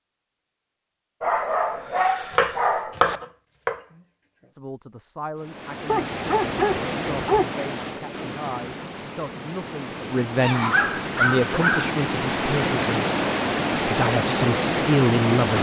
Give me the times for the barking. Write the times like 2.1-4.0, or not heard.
1.2-3.2, 5.8-7.5, 10.4-11.9.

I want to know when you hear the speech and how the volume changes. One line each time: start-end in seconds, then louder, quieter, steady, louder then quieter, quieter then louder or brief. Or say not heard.
4.5-13.2 louder
13.8-15.5 brief.